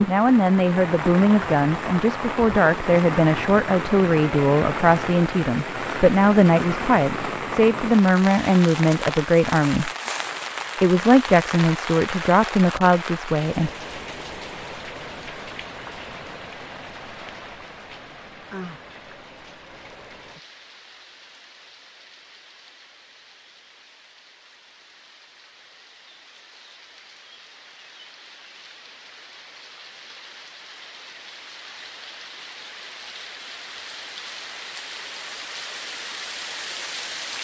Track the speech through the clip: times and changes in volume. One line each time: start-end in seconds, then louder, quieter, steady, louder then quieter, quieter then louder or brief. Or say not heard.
0.1-9.9 steady
10.8-13.7 brief.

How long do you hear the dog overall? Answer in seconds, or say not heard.
not heard.